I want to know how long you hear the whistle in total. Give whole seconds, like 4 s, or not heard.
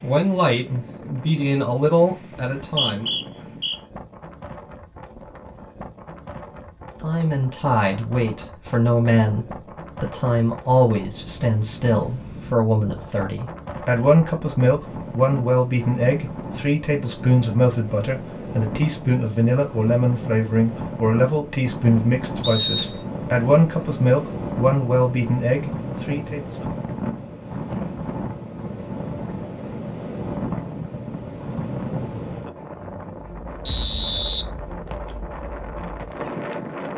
3 s.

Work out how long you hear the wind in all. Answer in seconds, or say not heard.
37 s.